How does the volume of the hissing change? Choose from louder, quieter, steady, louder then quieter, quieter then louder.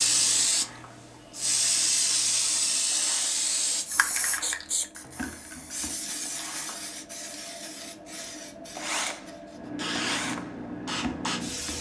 quieter then louder.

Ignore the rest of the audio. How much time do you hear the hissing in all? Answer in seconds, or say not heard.
12 s.